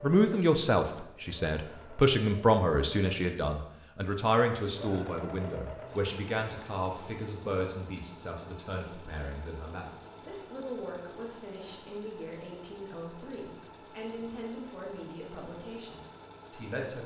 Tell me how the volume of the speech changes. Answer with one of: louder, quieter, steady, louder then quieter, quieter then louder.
quieter.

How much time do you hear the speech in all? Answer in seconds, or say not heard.
17 s.